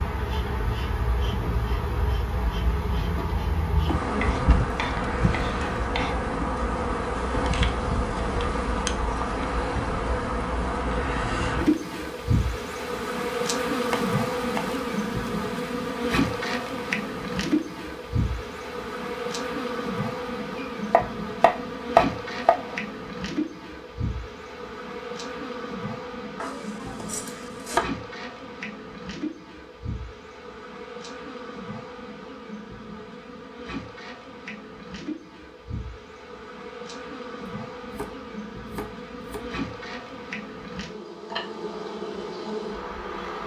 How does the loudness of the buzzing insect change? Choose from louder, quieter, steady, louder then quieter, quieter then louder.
quieter.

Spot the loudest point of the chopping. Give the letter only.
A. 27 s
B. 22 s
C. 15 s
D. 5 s
B.